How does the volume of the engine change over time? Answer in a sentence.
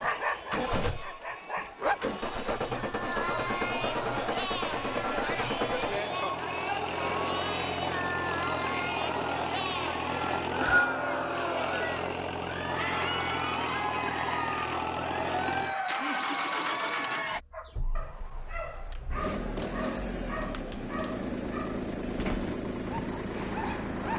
The volume of the engine stays about the same.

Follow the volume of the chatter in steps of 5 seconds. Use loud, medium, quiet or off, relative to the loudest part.
loud, loud, loud, loud, off.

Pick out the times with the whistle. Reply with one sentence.
You can hear the whistle from 10.2 to 10.9 s.